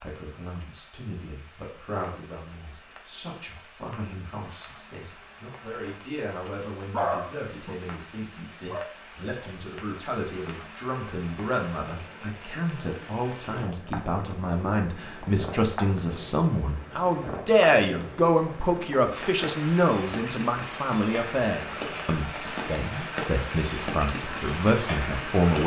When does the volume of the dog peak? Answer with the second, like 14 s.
7 s.